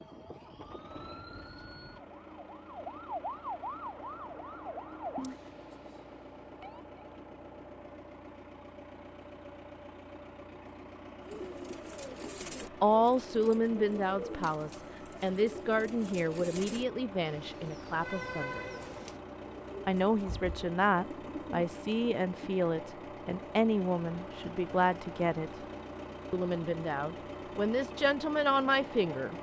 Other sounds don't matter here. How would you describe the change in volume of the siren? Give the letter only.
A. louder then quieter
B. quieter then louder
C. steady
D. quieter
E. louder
A.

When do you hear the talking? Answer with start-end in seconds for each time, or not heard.
12.8-18.6, 19.9-25.5, 26.3-29.3.